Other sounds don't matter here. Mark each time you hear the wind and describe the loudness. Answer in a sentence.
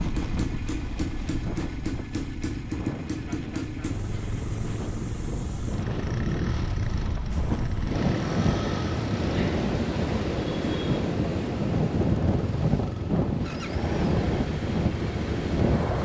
You can hear the wind from 0.0 to 16.0 s, getting louder.